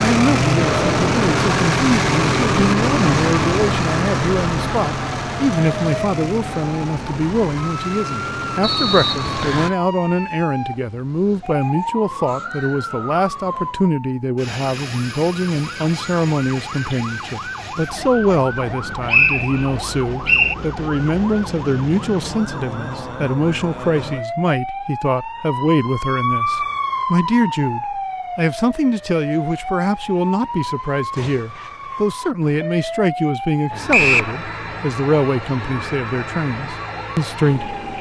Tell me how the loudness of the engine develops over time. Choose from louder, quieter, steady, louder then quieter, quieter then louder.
quieter.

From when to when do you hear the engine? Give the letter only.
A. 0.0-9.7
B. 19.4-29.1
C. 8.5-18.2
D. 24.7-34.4
A.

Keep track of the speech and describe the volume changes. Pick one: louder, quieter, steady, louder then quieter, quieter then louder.
steady.